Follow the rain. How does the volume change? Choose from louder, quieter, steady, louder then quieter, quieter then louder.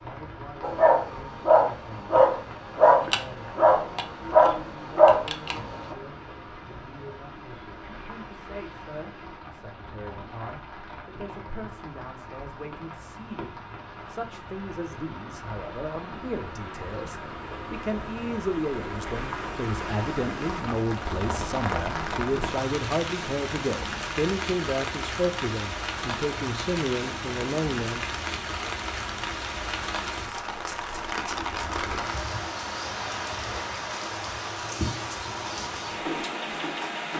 louder.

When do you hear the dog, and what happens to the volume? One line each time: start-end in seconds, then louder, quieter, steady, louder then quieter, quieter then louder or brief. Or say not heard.
0.6-6.0 steady.